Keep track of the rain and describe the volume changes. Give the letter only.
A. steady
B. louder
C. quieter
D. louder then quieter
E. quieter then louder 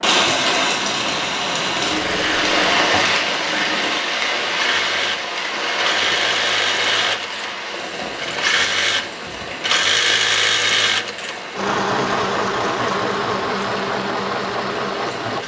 C.